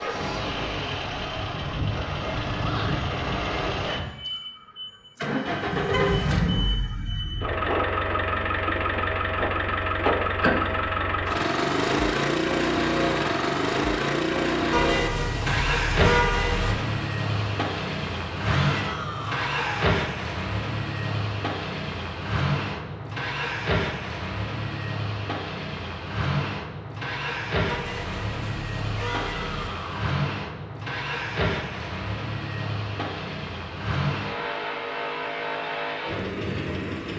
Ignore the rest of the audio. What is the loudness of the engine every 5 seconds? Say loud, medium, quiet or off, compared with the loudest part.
medium, loud, loud, loud, medium, medium, medium, medium.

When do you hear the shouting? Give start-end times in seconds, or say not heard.
2.6-3.1, 18.4-19.9, 28.9-30.1.